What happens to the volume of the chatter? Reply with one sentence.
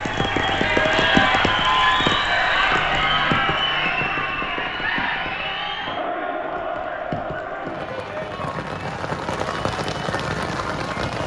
The volume of the chatter goes down.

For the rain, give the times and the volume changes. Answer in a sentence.
The rain can be heard from 0.0 to 11.2 s, getting quieter then louder.